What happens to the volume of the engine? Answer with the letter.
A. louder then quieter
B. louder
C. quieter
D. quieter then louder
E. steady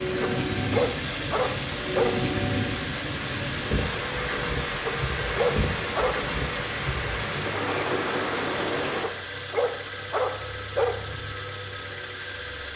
E.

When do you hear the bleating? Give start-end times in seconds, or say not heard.
not heard.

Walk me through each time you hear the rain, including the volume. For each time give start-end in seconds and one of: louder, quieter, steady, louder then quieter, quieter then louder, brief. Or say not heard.
0.0-9.1 steady.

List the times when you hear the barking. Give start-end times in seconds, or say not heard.
0.2-2.4, 4.8-6.2, 9.0-11.0.